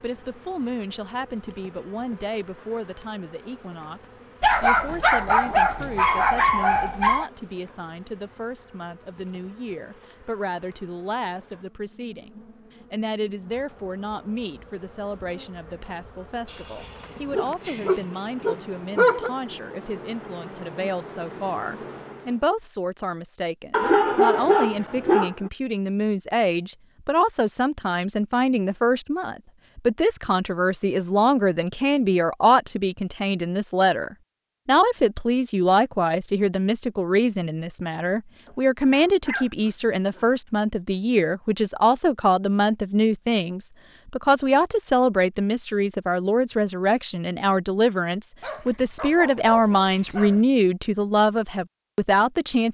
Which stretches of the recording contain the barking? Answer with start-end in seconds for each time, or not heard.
4.4-7.3, 16.4-19.3, 23.7-25.5, 38.5-40.4, 48.4-50.5.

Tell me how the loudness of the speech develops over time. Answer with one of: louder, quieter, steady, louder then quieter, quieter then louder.
louder.